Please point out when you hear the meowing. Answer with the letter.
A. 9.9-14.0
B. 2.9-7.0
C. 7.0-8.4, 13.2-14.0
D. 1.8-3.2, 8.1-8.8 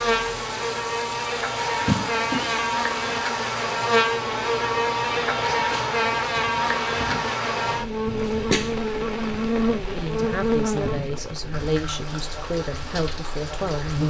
D.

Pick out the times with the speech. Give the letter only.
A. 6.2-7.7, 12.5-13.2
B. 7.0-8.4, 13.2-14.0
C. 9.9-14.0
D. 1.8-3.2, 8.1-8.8
C.